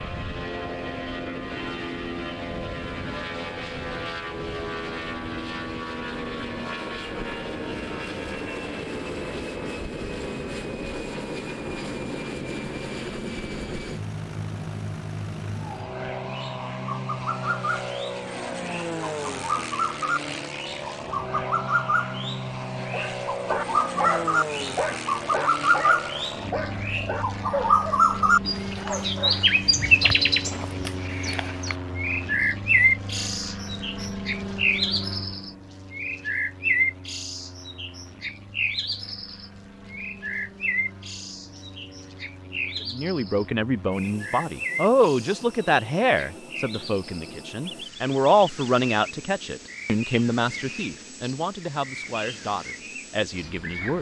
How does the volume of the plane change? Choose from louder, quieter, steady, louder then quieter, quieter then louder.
quieter.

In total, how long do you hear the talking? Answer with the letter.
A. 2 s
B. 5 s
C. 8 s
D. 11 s
D.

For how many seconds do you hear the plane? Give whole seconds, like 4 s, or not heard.
54 s.